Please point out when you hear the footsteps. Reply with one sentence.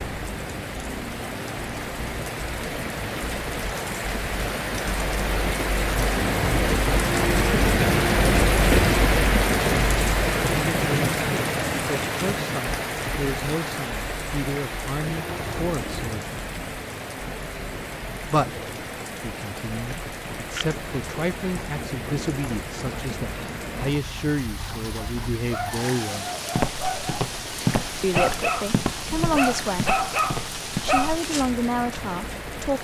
The footsteps can be heard from 26.6 to 32.2 s.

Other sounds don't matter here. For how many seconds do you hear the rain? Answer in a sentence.
The rain can be heard for 33 seconds in total.